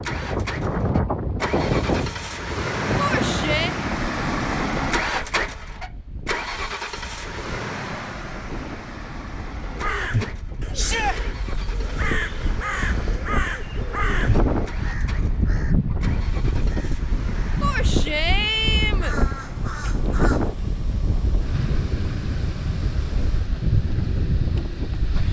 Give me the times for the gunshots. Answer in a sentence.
You can't hear the gunshots here.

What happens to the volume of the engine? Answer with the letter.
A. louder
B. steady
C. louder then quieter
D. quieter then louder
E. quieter
E.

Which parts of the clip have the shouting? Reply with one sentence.
The shouting can be heard from 3.0 to 3.8 s, from 10.8 to 11.2 s and from 17.6 to 19.1 s.